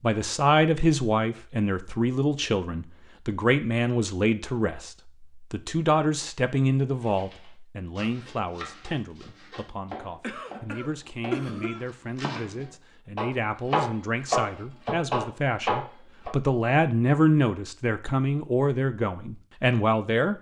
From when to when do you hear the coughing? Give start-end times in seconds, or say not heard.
9.8-11.8.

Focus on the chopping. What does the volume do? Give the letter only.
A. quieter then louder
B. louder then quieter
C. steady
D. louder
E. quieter
D.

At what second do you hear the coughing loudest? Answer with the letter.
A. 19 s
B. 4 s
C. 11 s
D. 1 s
C.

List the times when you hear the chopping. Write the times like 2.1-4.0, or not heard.
7.0-16.4.